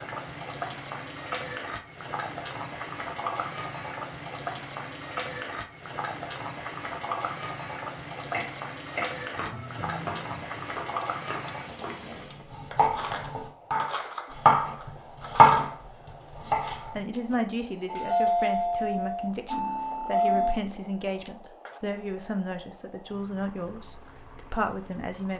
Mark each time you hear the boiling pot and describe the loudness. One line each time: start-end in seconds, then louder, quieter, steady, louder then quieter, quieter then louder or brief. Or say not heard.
0.0-25.3 quieter.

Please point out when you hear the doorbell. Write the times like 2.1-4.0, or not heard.
17.9-20.6.